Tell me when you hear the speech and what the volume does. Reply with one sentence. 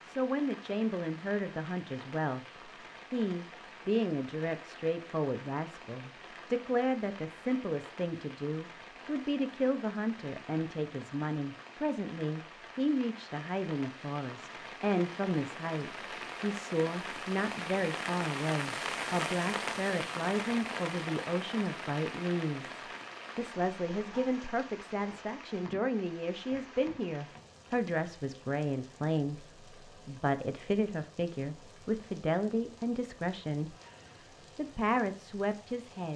You can hear the speech from 0.1 to 33.8 s, at a steady volume; and briefly from 34.5 to 36.1 s.